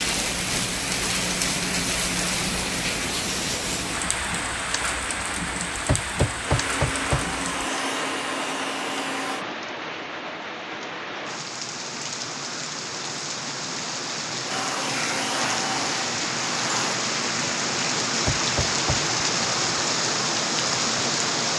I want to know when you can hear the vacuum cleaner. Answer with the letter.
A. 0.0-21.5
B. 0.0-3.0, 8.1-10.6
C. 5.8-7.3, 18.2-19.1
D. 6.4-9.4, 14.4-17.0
D.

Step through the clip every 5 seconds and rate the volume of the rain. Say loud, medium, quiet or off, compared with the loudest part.
loud, medium, medium, loud, loud.